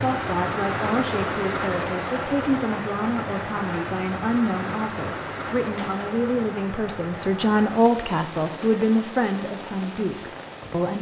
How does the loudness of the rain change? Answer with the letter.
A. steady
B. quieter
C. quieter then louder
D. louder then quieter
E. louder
B.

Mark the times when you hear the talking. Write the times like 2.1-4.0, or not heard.
0.0-10.9.